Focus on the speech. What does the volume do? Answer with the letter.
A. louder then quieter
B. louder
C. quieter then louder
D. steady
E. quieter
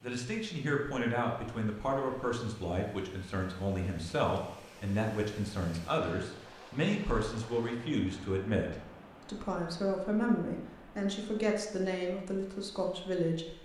D.